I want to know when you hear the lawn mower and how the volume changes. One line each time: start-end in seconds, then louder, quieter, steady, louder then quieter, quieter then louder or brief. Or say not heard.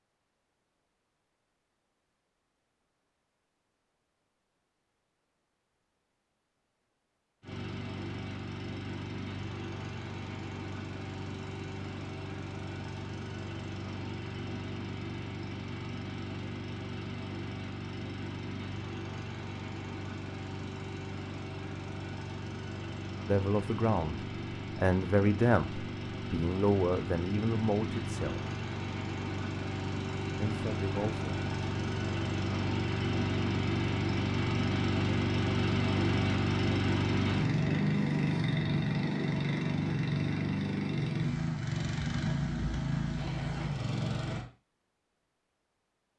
7.4-44.5 louder.